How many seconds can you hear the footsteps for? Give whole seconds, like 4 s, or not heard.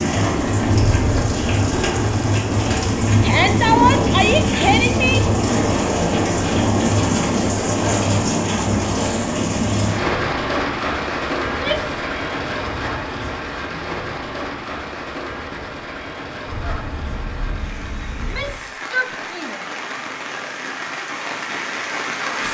not heard.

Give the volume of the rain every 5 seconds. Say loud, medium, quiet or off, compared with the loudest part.
loud, loud, medium, quiet, medium.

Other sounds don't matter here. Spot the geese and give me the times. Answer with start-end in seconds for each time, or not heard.
16.4-18.5.